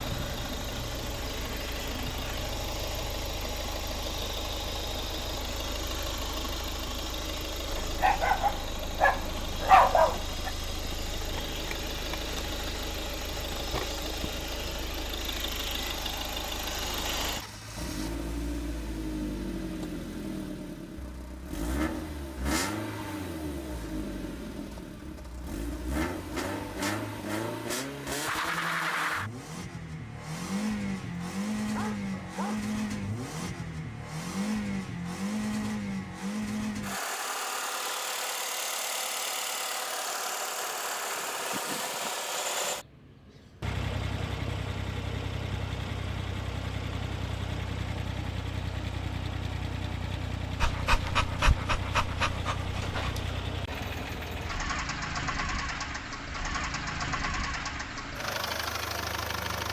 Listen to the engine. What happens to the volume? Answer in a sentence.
The loudness of the engine stays about the same.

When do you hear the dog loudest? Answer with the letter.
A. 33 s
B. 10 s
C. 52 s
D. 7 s
B.